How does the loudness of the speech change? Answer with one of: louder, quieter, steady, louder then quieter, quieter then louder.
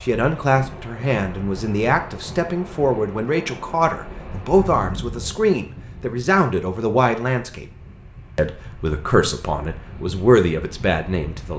steady.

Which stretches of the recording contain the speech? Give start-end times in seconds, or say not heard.
0.0-7.7, 8.3-11.5.